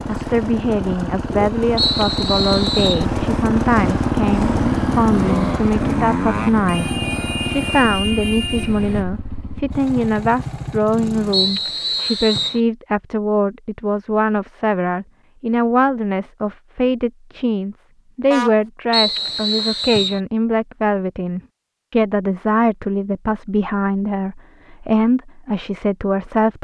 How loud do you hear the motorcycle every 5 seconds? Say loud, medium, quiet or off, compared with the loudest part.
loud, loud, medium, off, off, off.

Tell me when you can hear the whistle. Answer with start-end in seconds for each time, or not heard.
1.8-3.0, 11.3-12.6, 18.9-20.2.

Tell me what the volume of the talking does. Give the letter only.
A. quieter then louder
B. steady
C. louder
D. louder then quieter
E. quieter
B.